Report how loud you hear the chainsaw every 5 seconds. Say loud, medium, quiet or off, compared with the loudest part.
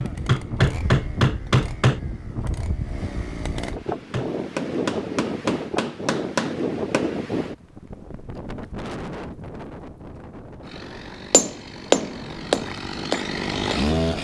medium, off, loud.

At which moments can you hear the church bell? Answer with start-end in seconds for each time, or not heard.
not heard.